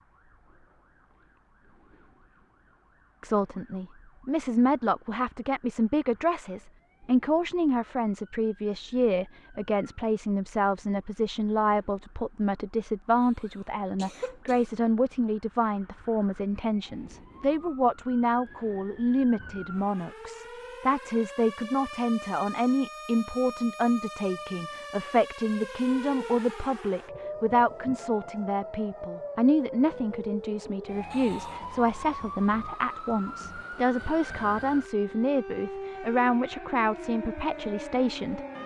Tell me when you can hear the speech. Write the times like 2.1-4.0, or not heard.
3.2-38.4.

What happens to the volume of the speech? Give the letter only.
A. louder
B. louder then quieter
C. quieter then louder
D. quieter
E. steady
E.